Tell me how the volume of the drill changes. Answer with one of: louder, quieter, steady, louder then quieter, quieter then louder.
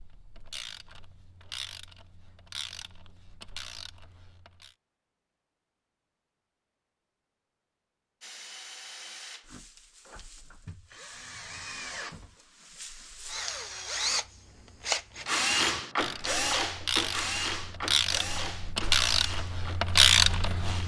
louder then quieter.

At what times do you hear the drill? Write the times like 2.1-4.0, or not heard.
8.2-20.8.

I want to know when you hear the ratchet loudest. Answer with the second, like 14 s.
20 s.